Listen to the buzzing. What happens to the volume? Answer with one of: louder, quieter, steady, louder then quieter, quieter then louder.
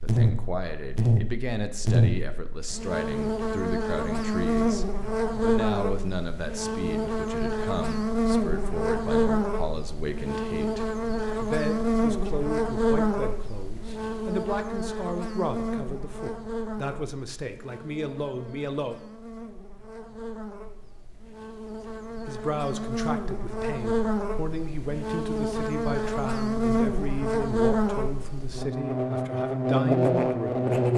quieter then louder.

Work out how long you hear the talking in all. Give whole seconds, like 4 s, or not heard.
27 s.